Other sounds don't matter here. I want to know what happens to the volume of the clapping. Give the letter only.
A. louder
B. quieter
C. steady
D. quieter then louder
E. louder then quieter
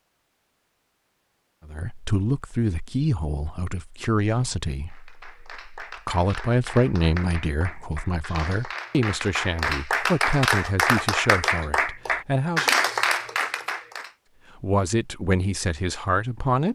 A.